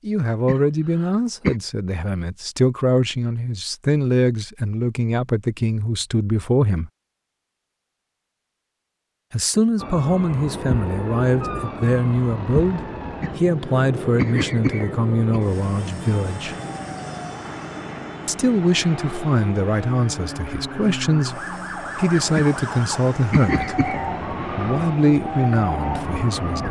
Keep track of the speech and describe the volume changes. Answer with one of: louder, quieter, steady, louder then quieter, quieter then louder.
steady.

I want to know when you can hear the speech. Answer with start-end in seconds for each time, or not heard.
0.1-6.9, 9.3-16.6, 18.2-26.6.